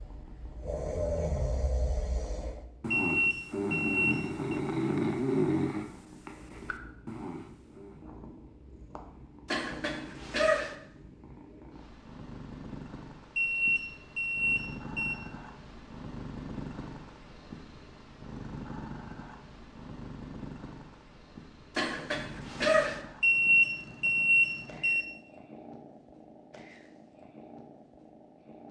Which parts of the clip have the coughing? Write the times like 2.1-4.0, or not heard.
9.4-10.8, 21.8-23.0.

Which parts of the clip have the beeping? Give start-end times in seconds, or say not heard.
2.9-4.6, 13.3-15.2, 23.2-25.0.